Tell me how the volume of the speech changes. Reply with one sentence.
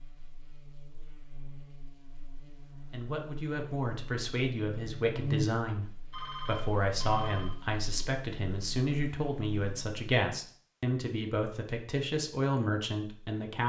The loudness of the speech stays about the same.